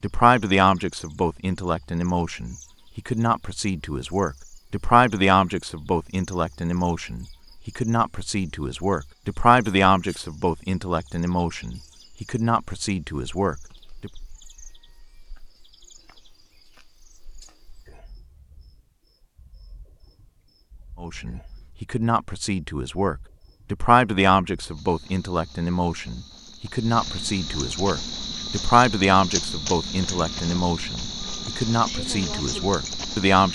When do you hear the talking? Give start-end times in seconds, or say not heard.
0.0-14.1, 21.0-33.4.